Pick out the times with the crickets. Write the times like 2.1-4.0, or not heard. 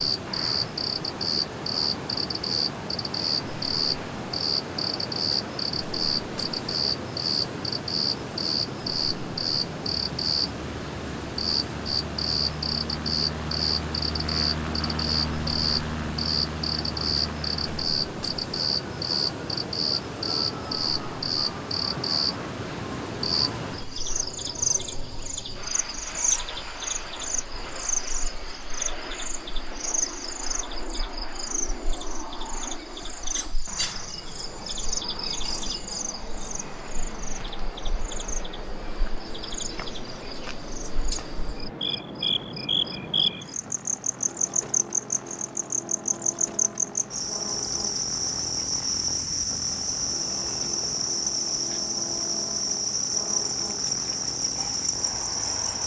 0.0-55.8.